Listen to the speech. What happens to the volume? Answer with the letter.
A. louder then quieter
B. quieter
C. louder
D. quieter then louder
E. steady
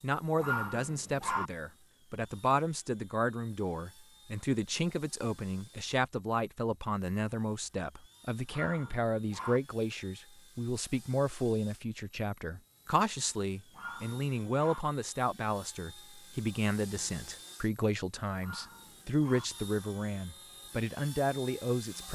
E.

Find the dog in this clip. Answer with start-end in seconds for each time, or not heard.
0.3-1.5, 8.5-9.6, 13.7-14.8, 18.4-19.4.